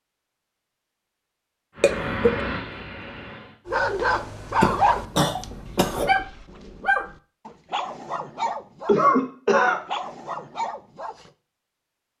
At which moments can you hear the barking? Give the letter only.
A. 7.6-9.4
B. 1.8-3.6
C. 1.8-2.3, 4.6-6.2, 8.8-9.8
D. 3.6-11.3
D.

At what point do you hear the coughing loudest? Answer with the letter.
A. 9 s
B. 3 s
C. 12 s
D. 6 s
A.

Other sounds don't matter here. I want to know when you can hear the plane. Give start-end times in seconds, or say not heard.
1.8-3.6.